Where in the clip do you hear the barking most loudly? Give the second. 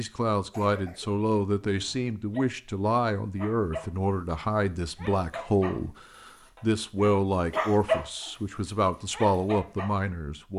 8 s.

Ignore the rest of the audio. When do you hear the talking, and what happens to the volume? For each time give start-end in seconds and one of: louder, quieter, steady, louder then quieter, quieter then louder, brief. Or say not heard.
0.0-10.5 steady.